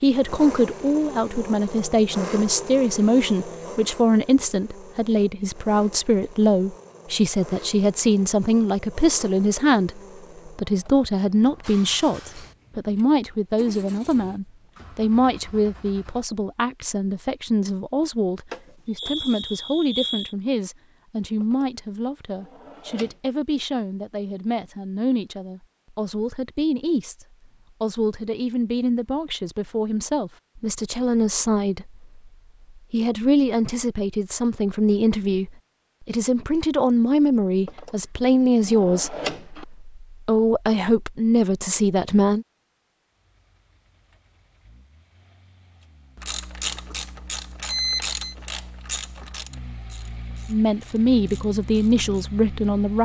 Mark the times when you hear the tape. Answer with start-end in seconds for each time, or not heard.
not heard.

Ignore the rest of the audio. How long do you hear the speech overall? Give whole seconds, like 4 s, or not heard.
45 s.